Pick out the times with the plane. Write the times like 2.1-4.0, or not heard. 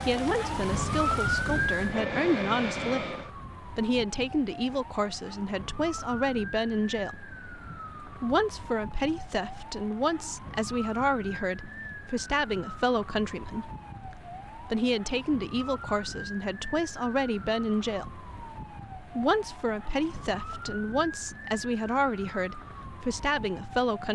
0.0-3.3.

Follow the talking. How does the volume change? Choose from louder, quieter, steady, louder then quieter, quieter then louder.
steady.